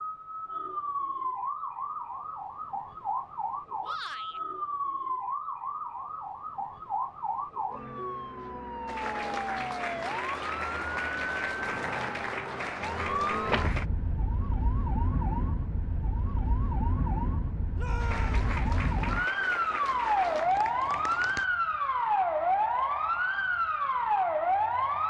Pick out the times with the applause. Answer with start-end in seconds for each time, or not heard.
8.8-13.8, 17.9-21.4.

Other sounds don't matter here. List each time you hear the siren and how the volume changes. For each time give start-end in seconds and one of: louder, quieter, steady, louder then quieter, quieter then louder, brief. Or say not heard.
0.0-25.0 louder.